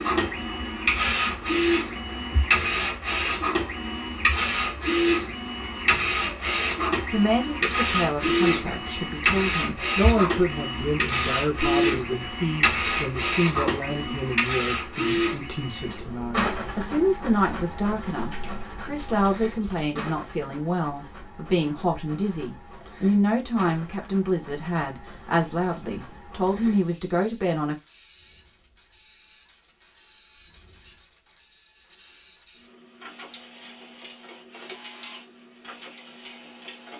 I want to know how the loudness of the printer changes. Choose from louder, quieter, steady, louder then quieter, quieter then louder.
quieter.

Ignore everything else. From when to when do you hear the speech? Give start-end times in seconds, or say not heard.
7.1-27.8.